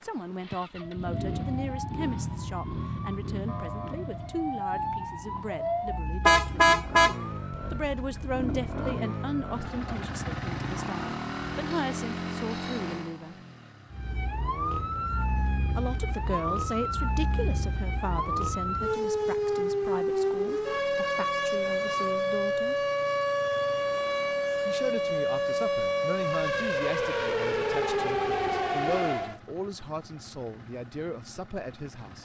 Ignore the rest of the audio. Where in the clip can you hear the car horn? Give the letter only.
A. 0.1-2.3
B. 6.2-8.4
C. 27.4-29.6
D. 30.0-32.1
B.